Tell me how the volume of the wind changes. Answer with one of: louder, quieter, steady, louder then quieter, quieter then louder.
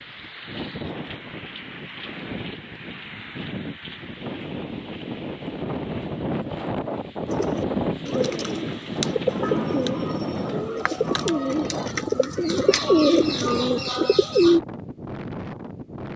louder then quieter.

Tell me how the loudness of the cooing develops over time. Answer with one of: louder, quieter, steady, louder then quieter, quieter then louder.
louder.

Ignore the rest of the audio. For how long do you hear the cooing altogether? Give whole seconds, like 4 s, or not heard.
7 s.